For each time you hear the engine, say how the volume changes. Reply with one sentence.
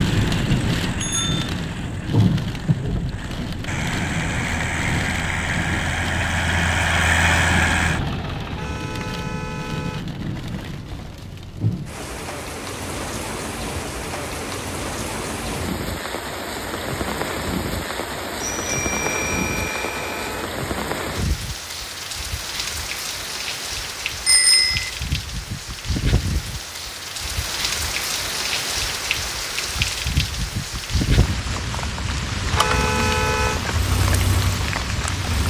The engine can be heard from 0.0 to 8.8 s, getting quieter then louder; and briefly from 32.7 to 35.4 s.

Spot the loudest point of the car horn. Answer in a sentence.
The volume of the car horn peaks at 33 seconds.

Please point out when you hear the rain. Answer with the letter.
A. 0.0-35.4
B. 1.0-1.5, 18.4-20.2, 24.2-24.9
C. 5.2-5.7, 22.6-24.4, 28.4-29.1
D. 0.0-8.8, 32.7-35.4
A.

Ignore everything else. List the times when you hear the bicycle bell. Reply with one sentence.
The bicycle bell can be heard from 1.0 to 1.5 s, from 18.4 to 20.2 s and from 24.2 to 24.9 s.